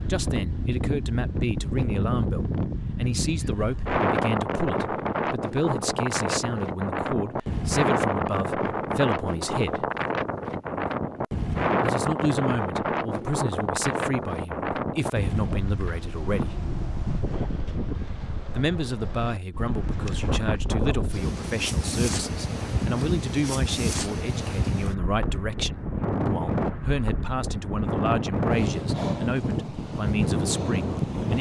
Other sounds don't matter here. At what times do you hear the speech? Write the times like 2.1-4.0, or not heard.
0.0-9.8, 11.8-16.6, 18.5-31.3.